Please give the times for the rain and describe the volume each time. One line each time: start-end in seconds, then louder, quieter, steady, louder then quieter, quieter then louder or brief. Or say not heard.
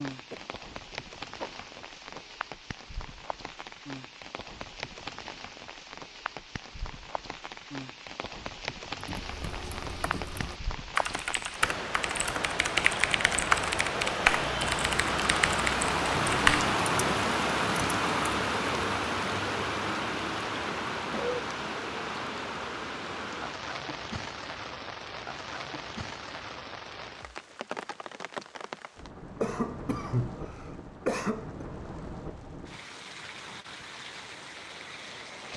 0.0-35.5 louder then quieter.